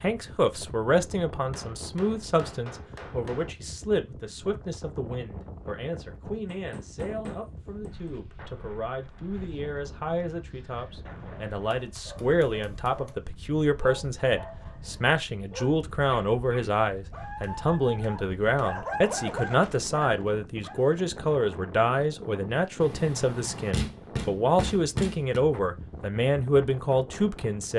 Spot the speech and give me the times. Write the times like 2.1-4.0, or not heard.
0.0-27.7.